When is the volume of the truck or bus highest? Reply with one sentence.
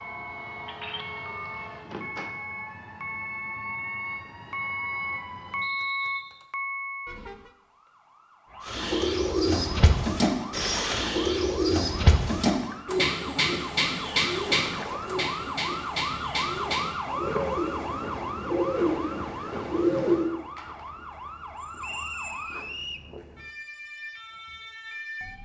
The volume of the truck or bus peaks at 6 seconds.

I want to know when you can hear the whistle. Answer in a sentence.
The whistle can be heard from 5.6 to 6.5 s and from 21.8 to 23.1 s.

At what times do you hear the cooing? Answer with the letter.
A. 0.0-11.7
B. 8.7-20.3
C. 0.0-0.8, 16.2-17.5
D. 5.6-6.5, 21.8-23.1
B.